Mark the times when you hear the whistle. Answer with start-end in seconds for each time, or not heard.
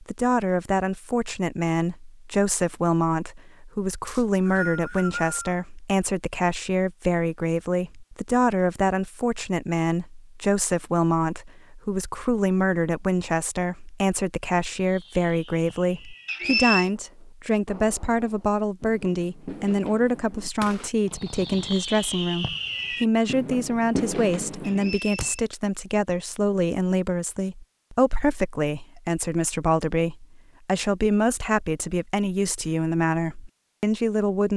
4.0-5.6, 16.2-16.9, 24.6-25.4.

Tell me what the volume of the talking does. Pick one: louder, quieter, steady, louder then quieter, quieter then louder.
steady.